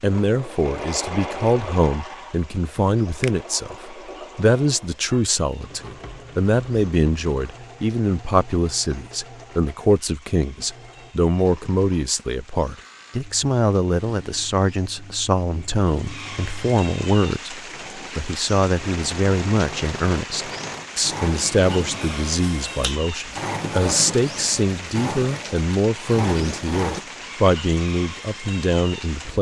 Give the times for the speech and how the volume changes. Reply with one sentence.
You can hear the speech from 0.0 to 29.3 s, at a steady volume.